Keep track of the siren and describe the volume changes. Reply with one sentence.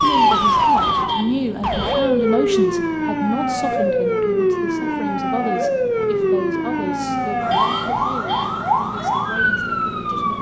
The loudness of the siren stays about the same.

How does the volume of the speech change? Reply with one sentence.
The loudness of the speech goes down.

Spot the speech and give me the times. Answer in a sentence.
The speech can be heard from 0.0 to 10.3 s.